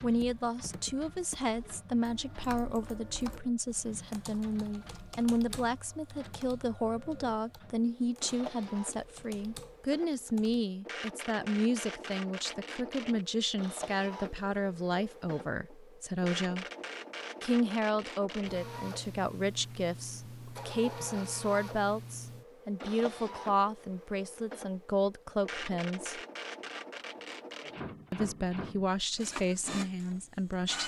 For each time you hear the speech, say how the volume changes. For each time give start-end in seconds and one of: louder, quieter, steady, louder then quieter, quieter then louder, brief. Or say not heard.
0.0-16.6 steady
17.4-26.2 steady
28.1-30.8 brief.